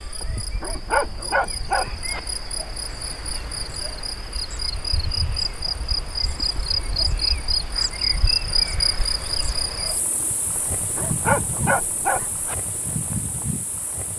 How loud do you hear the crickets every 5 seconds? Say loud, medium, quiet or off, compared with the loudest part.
medium, loud, medium.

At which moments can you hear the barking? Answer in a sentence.
You can hear the barking from 0.2 to 2.2 s and from 10.6 to 12.6 s.